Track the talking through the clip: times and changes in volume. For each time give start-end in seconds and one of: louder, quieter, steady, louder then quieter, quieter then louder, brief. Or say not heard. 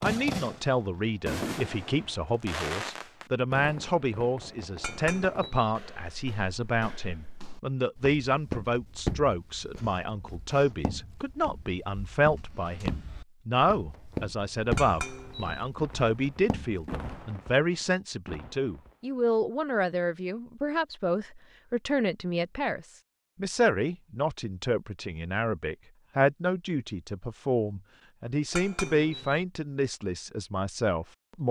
0.0-31.4 steady.